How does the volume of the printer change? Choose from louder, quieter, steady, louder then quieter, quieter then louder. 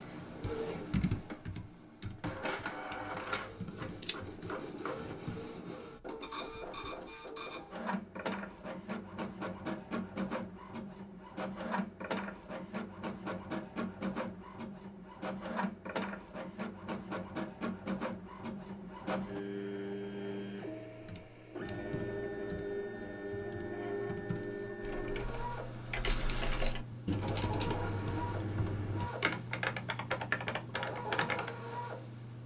steady.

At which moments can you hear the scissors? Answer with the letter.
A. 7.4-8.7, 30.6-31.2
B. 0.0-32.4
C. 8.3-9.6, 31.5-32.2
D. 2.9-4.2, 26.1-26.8
D.